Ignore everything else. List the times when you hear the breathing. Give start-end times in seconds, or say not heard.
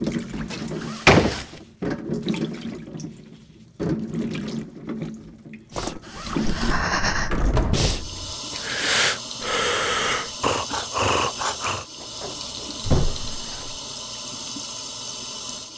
5.7-11.8.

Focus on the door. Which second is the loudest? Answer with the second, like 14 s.
1 s.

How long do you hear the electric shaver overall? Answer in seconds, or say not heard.
not heard.